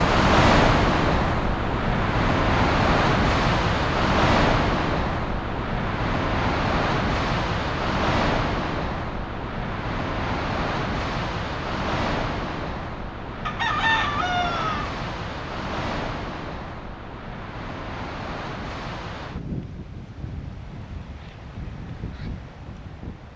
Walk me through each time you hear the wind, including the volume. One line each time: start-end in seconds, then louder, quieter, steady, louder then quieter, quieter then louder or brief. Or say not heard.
0.0-23.3 quieter.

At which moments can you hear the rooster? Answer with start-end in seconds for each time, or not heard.
13.4-14.9.